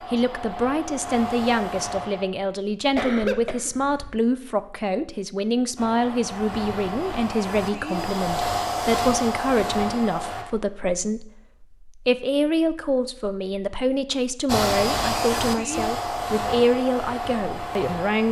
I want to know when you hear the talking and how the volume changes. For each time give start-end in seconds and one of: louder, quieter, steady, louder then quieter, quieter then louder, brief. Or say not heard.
0.1-18.2 steady.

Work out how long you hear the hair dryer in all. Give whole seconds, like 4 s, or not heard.
11 s.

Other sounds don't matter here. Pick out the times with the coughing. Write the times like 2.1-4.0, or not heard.
3.0-4.2.